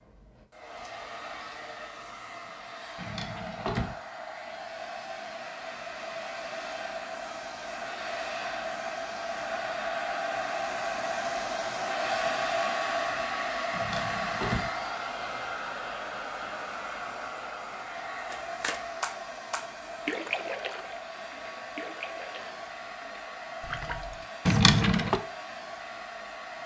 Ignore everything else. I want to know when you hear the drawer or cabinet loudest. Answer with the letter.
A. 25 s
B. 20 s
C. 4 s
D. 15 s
A.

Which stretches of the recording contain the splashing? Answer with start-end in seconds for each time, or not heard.
18.3-24.2.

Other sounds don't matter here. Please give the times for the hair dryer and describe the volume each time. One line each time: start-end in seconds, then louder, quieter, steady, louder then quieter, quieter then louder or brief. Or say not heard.
0.0-26.6 louder then quieter.